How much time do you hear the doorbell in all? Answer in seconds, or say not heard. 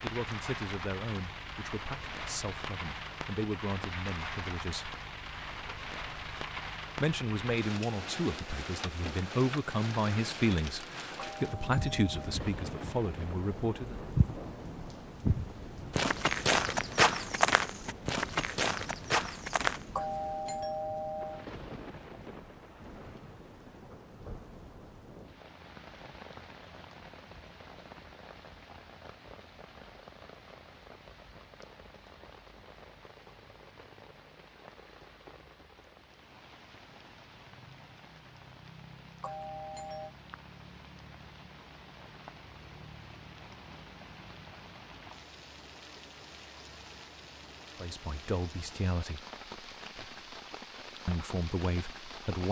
4 s.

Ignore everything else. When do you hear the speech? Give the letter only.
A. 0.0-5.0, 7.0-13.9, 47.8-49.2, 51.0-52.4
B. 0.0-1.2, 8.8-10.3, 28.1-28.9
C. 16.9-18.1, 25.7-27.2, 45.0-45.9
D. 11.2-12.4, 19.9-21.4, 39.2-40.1
A.